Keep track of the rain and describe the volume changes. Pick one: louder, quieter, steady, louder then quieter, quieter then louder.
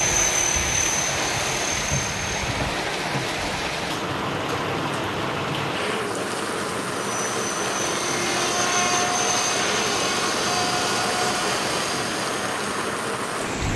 steady.